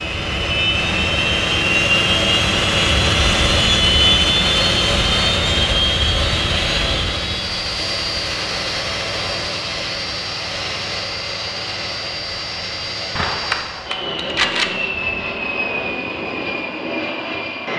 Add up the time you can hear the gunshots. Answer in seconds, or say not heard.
3 s.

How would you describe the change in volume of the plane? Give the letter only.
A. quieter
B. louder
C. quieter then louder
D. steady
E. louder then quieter
A.